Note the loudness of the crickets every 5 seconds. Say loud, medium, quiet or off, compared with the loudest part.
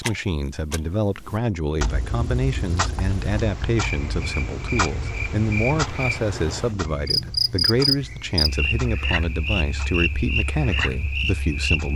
medium, loud, loud.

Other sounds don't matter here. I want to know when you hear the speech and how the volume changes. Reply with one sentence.
The speech can be heard from 0.0 to 11.9 s, at a steady volume.